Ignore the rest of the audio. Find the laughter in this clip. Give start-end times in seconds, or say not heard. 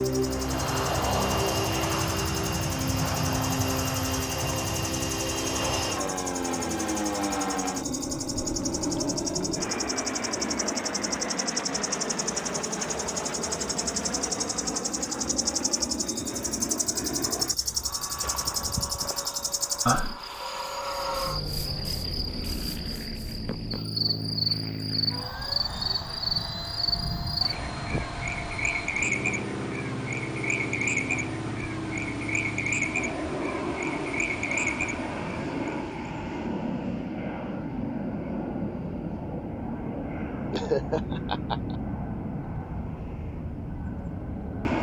40.5-41.8.